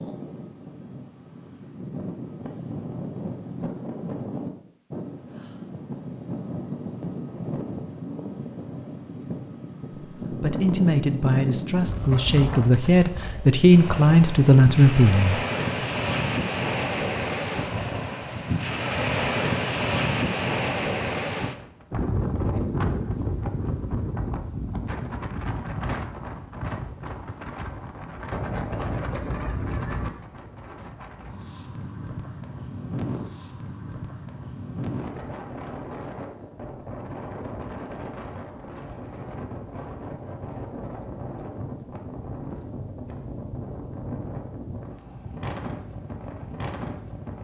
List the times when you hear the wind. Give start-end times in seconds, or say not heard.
0.0-47.3.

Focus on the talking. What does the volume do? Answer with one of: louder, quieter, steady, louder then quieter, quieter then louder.
louder.